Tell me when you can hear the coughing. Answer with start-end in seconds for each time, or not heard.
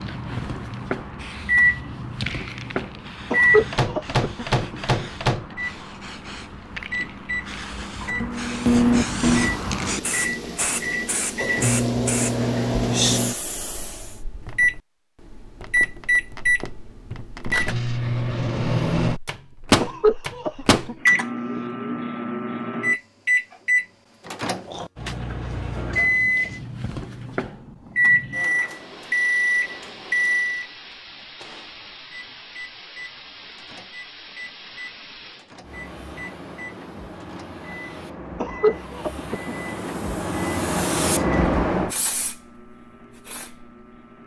3.3-5.1, 19.8-21.6, 38.4-39.8.